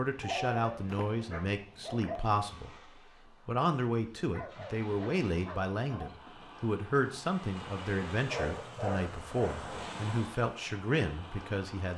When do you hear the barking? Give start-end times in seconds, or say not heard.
0.2-2.2, 4.3-6.2, 8.2-9.7.